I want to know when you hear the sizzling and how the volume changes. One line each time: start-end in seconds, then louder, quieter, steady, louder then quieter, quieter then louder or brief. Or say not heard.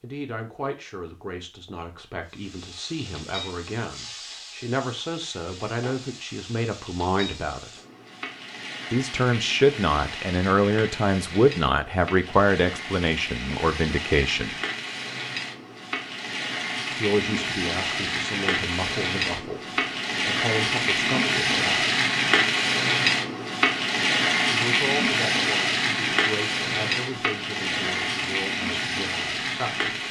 2.2-30.0 louder.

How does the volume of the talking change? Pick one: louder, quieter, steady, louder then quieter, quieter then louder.
louder then quieter.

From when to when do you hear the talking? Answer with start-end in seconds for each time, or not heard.
0.0-7.7, 8.9-14.6, 16.9-21.9, 24.4-29.9.